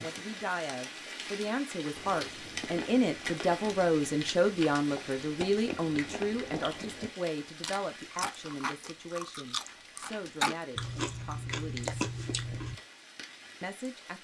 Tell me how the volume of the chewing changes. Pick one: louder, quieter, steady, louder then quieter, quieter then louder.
louder.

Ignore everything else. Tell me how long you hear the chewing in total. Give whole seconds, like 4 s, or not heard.
11 s.